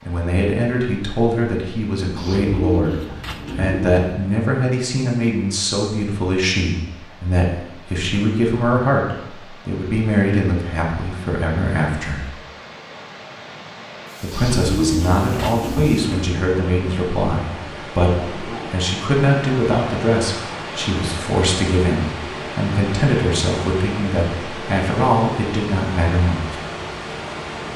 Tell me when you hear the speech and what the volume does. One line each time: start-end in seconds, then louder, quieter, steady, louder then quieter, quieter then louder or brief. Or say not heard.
0.0-12.2 steady
14.2-26.6 steady.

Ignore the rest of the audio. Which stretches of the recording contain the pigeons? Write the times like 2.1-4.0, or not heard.
2.1-4.2, 14.3-16.3.